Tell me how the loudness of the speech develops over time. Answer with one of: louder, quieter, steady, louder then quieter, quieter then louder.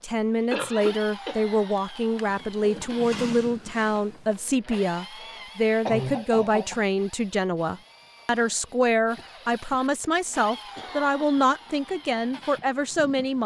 steady.